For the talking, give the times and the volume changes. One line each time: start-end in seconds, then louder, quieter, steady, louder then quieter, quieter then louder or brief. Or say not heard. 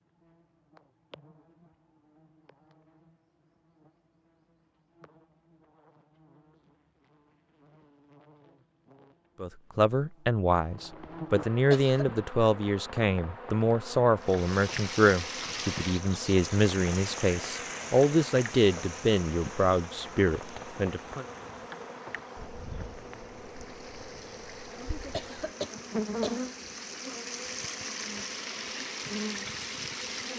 9.4-21.2 steady.